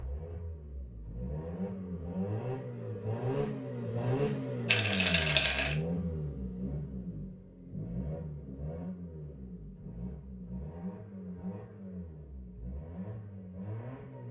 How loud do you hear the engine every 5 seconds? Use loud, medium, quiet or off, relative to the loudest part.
loud, loud, medium.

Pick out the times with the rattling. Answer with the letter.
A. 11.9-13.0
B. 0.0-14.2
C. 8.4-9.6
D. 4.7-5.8
D.